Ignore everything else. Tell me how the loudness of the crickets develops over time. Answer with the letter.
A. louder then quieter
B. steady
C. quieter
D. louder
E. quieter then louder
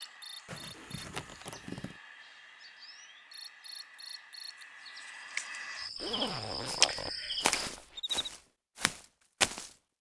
D.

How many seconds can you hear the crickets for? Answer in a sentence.
You can hear the crickets for 8 seconds altogether.